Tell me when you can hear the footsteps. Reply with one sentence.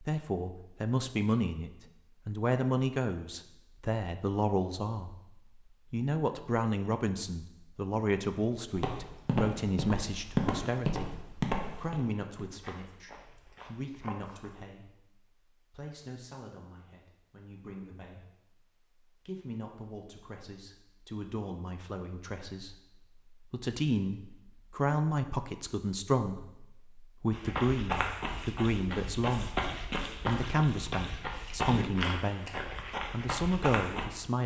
You can hear the footsteps from 8.7 to 14.6 s and from 27.3 to 34.0 s.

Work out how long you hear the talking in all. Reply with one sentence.
You can hear the talking for 32 seconds altogether.